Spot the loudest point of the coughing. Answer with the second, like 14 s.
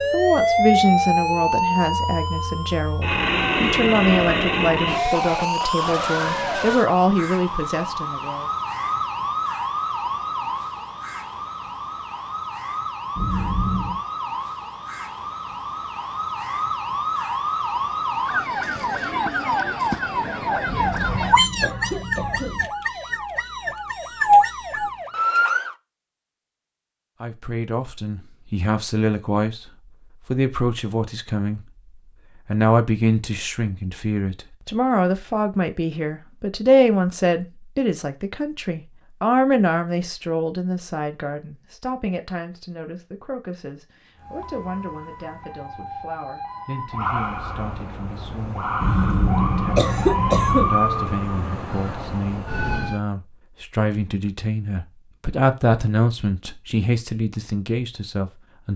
50 s.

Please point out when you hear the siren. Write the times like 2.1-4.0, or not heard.
0.0-25.8, 44.1-53.0.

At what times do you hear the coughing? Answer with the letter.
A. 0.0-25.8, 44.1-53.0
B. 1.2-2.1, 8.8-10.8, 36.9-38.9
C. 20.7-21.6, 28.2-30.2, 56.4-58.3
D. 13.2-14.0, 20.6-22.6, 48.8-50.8
D.